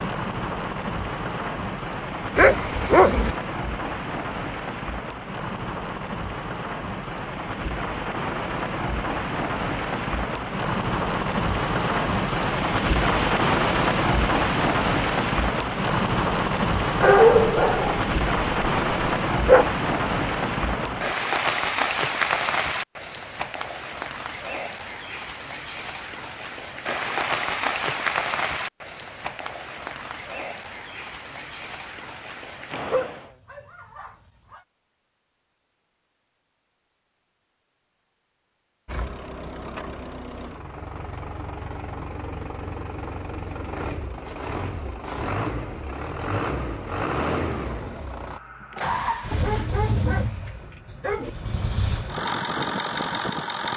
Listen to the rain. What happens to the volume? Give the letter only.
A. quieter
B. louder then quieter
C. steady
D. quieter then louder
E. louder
B.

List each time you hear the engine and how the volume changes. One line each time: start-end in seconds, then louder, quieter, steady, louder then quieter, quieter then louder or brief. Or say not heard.
38.9-53.7 louder.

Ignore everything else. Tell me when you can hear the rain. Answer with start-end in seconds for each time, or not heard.
0.0-33.3.